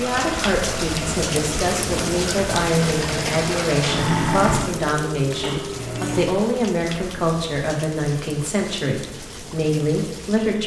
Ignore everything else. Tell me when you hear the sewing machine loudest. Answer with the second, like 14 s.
4 s.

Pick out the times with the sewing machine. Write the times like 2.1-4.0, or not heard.
0.0-6.2.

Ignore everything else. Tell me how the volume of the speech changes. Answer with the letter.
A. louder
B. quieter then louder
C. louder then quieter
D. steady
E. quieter
D.